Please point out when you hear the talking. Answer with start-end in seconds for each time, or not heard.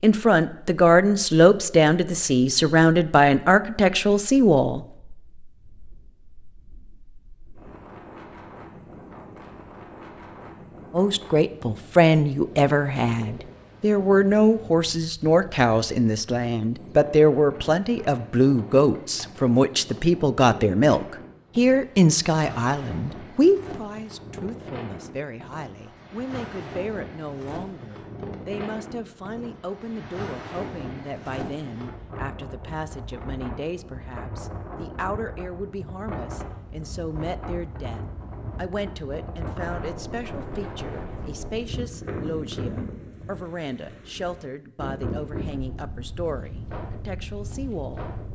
0.0-4.8, 10.9-48.1.